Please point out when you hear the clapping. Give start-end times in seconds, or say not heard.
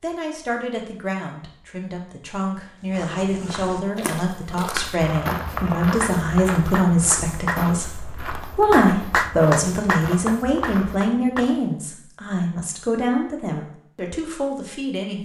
6.0-11.4.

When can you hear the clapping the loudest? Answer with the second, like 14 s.
9 s.